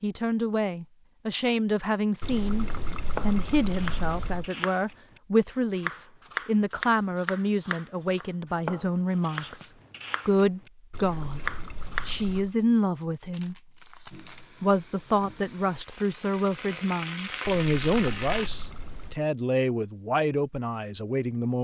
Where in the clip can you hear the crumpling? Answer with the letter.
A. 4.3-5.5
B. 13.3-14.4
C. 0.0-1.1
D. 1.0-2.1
B.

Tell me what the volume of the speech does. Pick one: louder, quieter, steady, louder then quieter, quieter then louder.
steady.